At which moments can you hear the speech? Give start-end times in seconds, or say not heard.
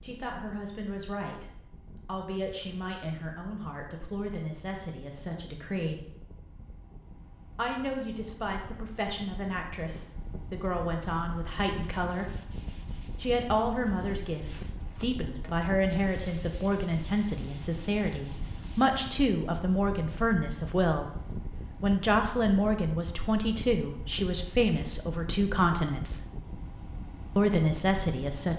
0.0-6.0, 7.5-12.3, 13.2-21.2, 21.8-26.2, 27.4-28.5.